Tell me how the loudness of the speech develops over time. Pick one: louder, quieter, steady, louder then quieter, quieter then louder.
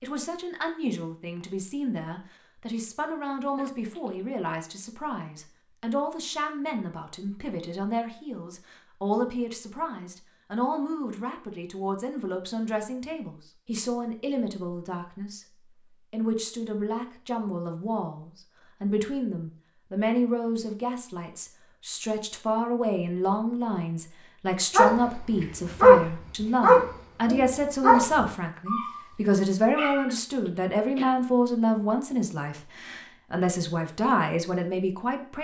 louder.